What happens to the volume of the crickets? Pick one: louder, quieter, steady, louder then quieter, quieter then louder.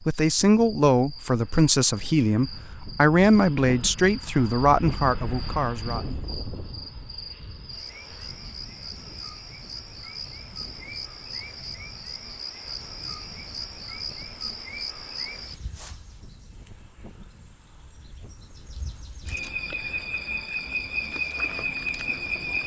louder.